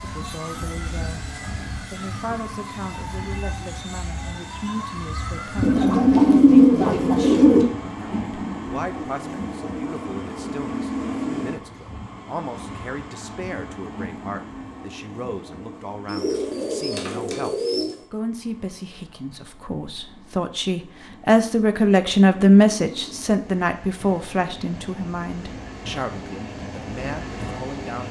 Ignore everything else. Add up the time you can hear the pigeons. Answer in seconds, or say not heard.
4 s.